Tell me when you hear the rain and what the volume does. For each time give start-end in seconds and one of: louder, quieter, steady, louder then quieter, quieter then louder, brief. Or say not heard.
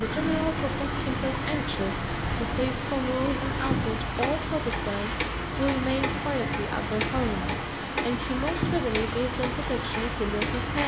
0.0-10.8 steady.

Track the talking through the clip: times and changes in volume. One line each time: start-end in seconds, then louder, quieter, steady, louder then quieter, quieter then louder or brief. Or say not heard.
0.0-10.8 steady.